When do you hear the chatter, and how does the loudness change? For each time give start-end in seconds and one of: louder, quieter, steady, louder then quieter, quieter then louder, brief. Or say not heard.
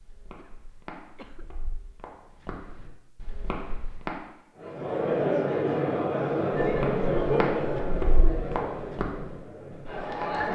4.5-10.5 quieter.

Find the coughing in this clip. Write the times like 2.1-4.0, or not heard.
0.3-1.4.